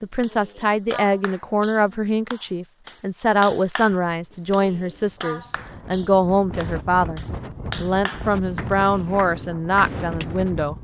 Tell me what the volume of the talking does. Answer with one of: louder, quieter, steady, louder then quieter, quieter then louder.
steady.